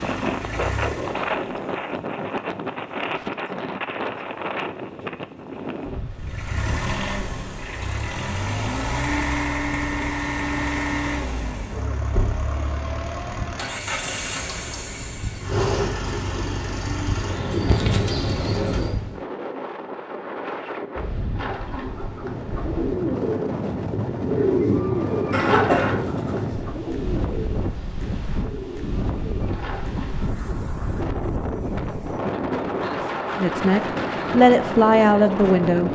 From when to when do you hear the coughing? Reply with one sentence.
The coughing can be heard from 25.3 to 26.2 s.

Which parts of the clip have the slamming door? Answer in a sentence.
You can hear the slamming door from 12.1 to 12.6 s.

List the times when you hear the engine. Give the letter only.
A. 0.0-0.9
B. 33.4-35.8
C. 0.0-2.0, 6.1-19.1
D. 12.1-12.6
C.